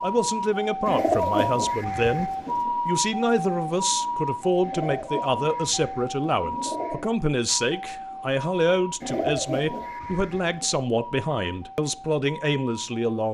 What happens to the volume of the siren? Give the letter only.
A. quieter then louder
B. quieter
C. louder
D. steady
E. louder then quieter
B.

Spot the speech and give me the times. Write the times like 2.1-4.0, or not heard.
0.0-13.2.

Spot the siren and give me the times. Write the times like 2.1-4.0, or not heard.
0.0-13.0.